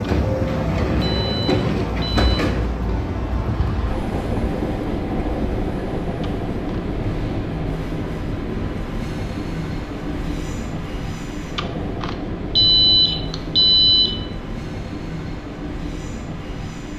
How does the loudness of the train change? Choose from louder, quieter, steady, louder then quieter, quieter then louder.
quieter.